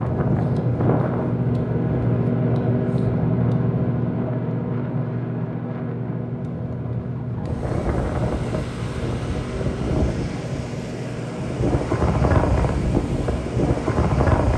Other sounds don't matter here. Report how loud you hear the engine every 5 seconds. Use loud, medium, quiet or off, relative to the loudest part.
loud, medium, medium.